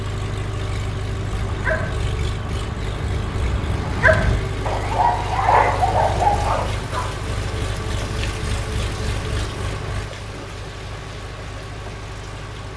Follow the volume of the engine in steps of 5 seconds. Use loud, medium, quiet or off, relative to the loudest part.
loud, loud, medium.